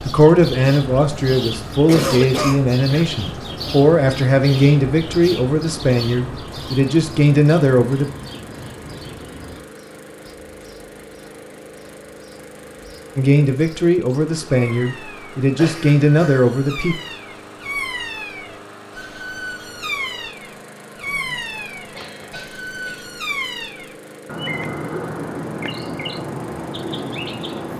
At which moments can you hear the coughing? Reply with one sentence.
You can hear the coughing from 1.9 to 2.6 s, from 15.6 to 16.4 s and from 21.1 to 23.1 s.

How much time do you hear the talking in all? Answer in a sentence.
You can hear the talking for 12 seconds altogether.